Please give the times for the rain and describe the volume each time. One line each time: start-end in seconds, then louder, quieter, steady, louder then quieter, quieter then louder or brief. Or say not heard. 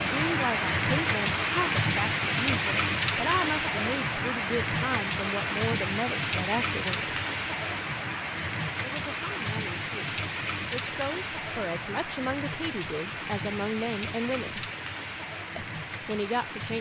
0.0-16.7 quieter.